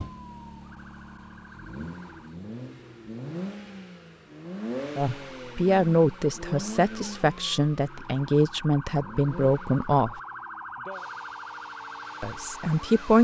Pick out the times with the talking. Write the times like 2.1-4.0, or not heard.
5.0-10.2, 12.2-13.2.